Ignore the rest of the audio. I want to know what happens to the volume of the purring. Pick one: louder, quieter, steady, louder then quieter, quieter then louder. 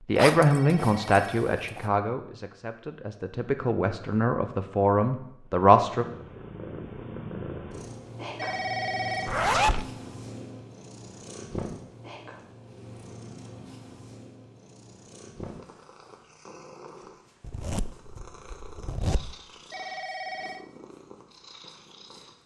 quieter.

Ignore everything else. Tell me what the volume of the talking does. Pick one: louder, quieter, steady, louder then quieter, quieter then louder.
quieter then louder.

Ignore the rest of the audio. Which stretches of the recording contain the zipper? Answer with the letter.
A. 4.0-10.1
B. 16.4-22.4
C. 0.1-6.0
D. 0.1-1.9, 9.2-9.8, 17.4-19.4
D.